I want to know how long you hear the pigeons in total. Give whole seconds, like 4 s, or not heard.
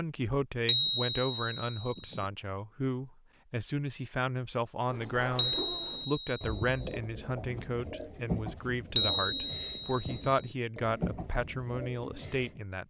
8 s.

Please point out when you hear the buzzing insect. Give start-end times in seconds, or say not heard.
not heard.